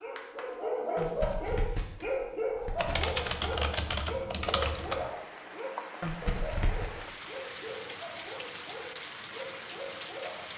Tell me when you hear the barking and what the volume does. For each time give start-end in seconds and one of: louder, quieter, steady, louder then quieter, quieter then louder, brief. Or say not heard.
0.0-10.5 quieter.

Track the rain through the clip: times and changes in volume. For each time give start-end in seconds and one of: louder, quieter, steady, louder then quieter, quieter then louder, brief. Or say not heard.
4.8-10.5 steady.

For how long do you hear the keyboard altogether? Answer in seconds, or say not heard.
2 s.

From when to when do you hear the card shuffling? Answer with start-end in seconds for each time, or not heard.
0.9-3.0, 6.0-6.9.